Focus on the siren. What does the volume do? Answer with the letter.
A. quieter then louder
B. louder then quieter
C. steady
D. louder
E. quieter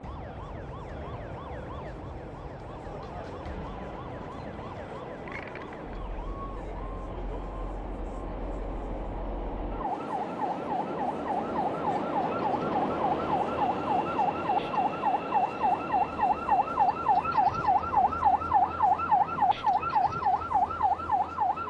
D.